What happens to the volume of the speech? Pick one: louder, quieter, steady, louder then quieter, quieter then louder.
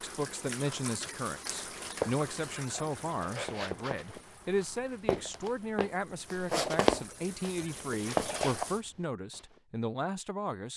steady.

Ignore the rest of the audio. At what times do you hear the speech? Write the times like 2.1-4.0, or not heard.
0.0-10.7.